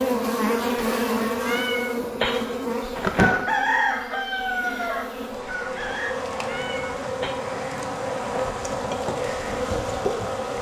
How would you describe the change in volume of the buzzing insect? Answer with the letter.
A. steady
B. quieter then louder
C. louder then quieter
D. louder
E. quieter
B.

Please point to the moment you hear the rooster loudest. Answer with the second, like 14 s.
4 s.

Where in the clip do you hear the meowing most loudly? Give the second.
3 s.